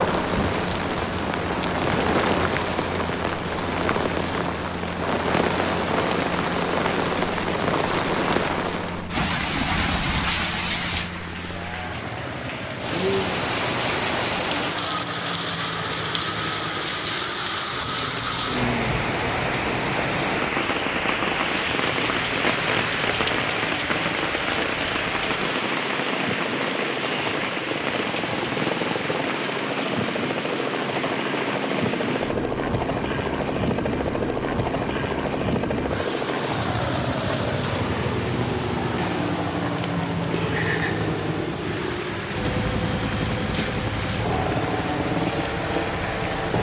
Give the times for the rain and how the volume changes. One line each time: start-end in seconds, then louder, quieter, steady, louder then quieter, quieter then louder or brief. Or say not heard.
0.0-46.5 quieter.